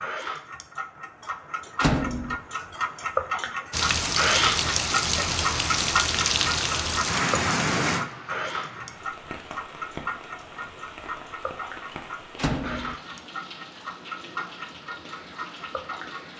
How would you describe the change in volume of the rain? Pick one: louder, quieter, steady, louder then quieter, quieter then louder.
quieter.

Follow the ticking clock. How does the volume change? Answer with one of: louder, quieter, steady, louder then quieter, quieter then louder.
louder then quieter.